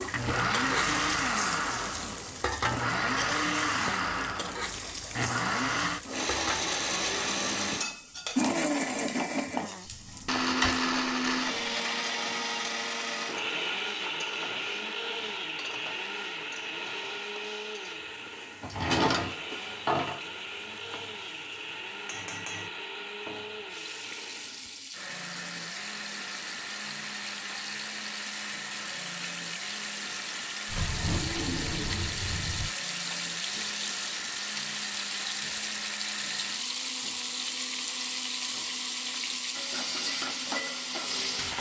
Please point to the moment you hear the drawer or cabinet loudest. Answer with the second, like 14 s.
19 s.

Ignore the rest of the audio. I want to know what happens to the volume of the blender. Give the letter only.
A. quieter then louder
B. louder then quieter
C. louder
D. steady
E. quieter
E.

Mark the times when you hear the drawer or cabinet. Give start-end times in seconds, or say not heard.
9.9-10.8, 18.6-20.2, 30.6-32.7.